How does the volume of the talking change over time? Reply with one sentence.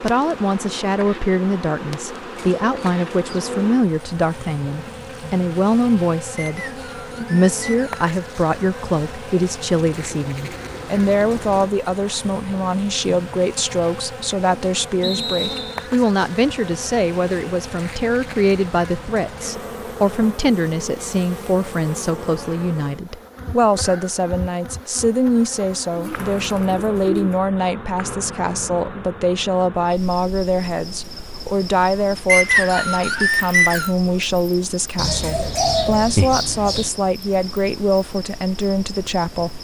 The loudness of the talking stays about the same.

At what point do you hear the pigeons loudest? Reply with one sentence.
The loudest moment of the pigeons is at 36 seconds.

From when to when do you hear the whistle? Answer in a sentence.
The whistle can be heard from 6.3 to 7.9 s, from 15.0 to 15.9 s and from 32.2 to 33.9 s.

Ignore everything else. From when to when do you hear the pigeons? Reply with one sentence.
You can hear the pigeons from 2.4 to 3.8 s, from 10.1 to 11.7 s, from 25.9 to 27.4 s and from 35.0 to 36.9 s.